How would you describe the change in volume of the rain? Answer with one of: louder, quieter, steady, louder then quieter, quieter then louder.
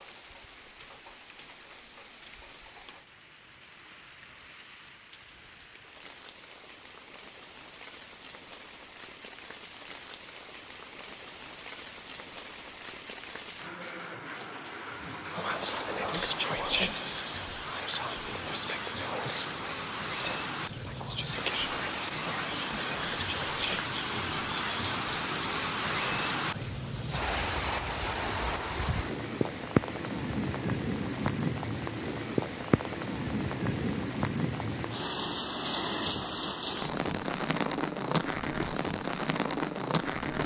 louder.